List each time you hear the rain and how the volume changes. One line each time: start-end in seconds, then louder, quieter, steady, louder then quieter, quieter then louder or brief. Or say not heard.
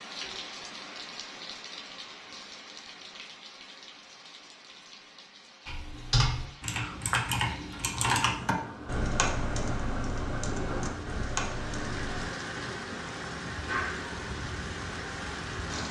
0.0-15.8 quieter then louder.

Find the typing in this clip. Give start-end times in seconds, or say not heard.
5.7-12.2.